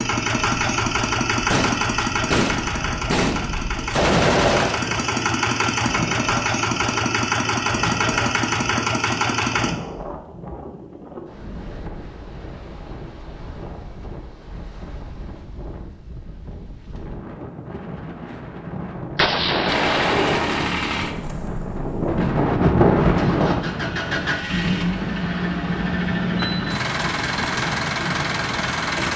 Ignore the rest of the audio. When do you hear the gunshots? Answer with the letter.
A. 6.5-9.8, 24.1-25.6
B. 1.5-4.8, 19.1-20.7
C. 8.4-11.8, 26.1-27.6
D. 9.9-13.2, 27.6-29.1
B.